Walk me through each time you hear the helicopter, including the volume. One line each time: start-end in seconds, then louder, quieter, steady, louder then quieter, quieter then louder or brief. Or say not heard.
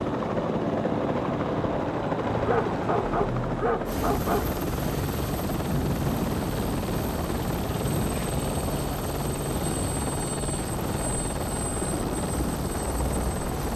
0.0-13.7 steady.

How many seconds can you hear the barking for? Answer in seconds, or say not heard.
2 s.